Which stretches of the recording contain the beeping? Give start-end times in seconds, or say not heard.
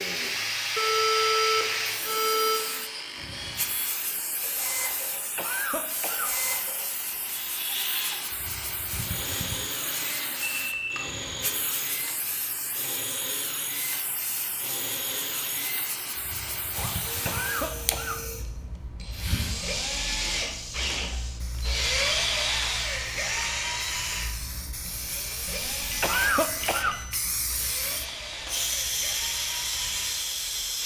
0.8-2.6, 10.4-11.1, 25.6-27.1.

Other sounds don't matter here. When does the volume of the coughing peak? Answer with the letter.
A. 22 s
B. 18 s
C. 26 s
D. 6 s
C.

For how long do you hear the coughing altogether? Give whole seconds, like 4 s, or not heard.
3 s.